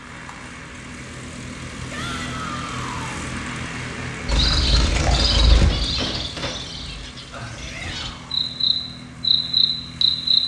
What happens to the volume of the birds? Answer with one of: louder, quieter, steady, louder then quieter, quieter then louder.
quieter then louder.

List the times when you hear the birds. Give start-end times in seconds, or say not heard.
4.2-10.4.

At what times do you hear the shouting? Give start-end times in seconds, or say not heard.
1.9-3.2, 7.5-8.4.